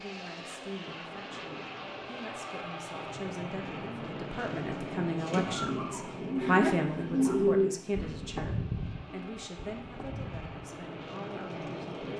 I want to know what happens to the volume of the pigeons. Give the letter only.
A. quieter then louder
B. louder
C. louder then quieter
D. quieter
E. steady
C.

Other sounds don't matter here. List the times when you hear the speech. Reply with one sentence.
The speech can be heard from 0.0 to 12.0 s.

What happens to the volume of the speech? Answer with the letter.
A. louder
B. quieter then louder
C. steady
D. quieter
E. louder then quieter
E.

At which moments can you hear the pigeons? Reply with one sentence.
You can hear the pigeons from 3.6 to 12.1 s.